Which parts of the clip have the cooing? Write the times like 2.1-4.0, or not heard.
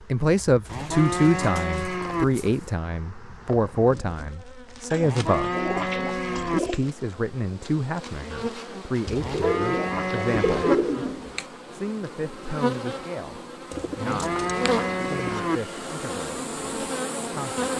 0.7-2.7, 4.9-6.9, 9.1-11.4, 13.7-15.4.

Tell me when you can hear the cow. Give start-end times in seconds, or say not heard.
0.7-2.2, 5.0-6.6, 9.2-10.8, 14.0-15.6.